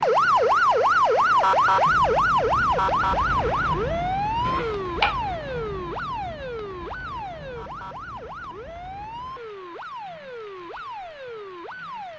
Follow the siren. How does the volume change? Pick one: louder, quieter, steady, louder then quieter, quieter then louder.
quieter.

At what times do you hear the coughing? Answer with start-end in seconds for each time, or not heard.
4.4-5.2.